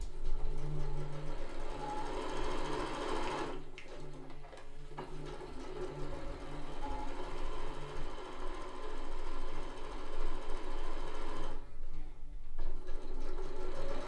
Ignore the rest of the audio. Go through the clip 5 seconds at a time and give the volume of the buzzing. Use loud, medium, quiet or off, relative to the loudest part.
loud, loud, medium.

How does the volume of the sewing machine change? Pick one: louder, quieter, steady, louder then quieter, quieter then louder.
quieter.